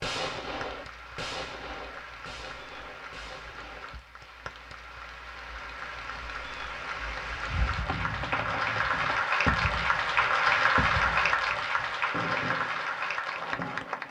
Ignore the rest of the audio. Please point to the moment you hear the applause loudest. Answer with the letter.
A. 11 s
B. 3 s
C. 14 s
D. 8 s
A.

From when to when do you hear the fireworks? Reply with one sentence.
The fireworks can be heard from 0.0 to 4.0 s and from 7.5 to 14.0 s.